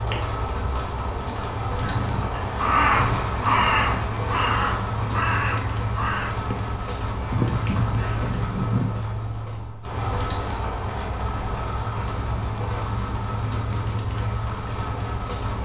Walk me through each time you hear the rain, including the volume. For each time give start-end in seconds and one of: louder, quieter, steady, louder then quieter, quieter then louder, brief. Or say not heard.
0.0-15.5 steady.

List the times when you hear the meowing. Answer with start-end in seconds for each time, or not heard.
not heard.